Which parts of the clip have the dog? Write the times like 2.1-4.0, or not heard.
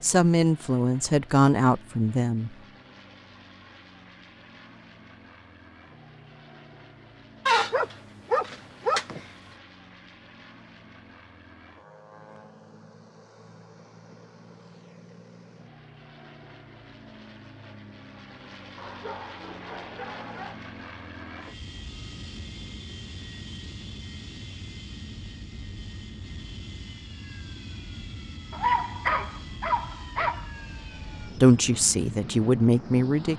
7.5-9.2, 18.8-20.6, 28.5-30.4.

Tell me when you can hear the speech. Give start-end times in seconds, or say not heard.
0.0-2.5, 31.4-33.3.